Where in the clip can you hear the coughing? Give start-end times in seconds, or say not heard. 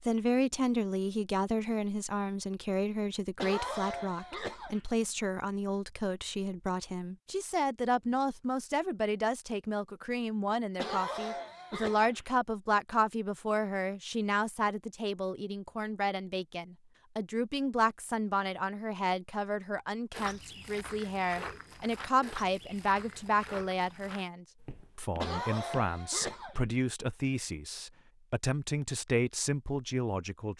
3.4-4.8, 10.8-12.2, 25.2-26.6.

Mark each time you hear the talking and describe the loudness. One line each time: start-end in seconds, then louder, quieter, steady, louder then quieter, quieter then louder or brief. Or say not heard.
0.0-30.5 steady.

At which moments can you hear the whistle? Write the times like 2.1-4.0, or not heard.
not heard.